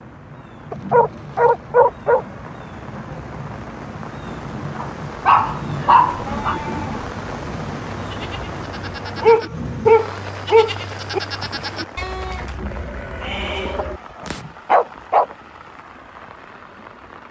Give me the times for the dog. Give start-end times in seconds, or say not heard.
0.7-2.2, 4.8-6.5, 9.2-11.2, 13.8-15.2.